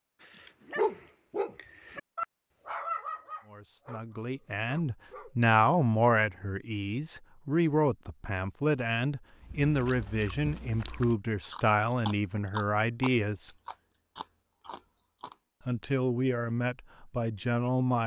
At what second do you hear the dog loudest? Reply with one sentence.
The loudest moment of the dog is at 1 second.